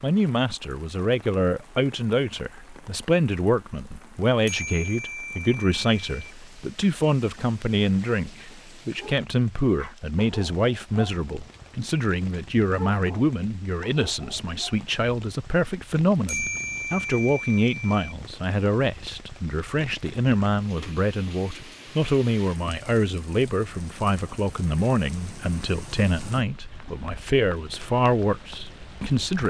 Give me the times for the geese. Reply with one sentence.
You can't hear the geese here.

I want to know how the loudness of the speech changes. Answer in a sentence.
The loudness of the speech stays about the same.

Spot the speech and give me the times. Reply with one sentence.
You can hear the speech from 0.0 to 29.4 s.